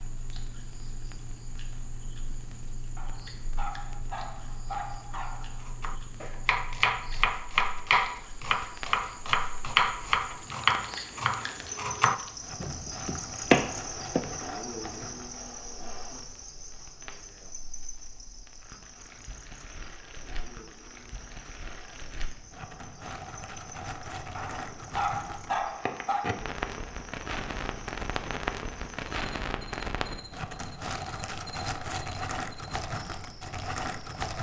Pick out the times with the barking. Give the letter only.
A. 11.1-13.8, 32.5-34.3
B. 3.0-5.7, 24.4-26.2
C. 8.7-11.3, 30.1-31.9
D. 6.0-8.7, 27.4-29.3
B.